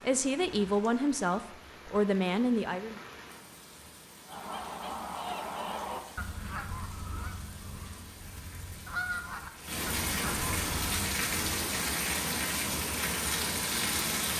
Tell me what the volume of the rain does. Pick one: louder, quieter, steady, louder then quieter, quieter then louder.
louder.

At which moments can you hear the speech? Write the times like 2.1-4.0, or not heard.
0.0-3.0.